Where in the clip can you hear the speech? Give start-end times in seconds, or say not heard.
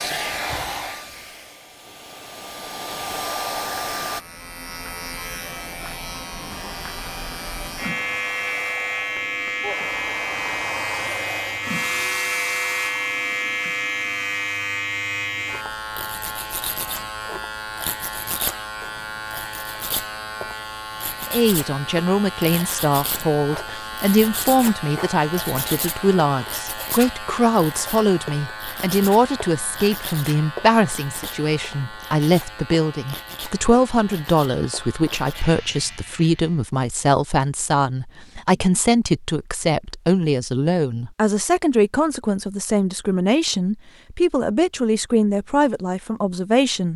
21.3-46.9.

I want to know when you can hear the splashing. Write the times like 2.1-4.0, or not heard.
not heard.